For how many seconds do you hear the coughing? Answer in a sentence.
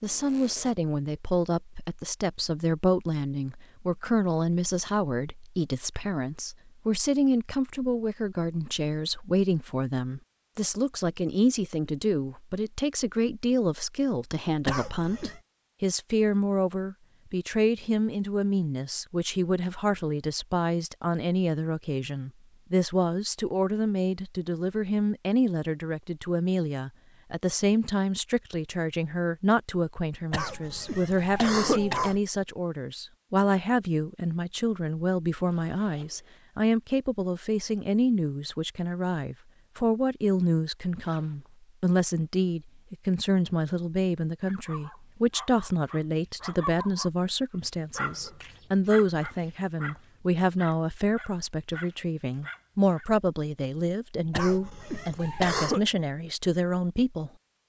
You can hear the coughing for 4 seconds altogether.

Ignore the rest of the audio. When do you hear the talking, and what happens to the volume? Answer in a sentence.
The talking can be heard from 0.0 to 57.3 s, at a steady volume.